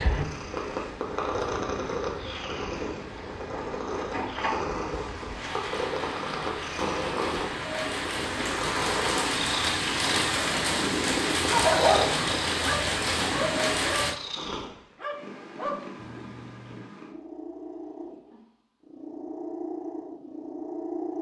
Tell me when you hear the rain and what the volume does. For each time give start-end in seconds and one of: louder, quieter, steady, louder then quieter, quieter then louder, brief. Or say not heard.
0.0-14.2 louder.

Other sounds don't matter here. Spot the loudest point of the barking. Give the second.
12 s.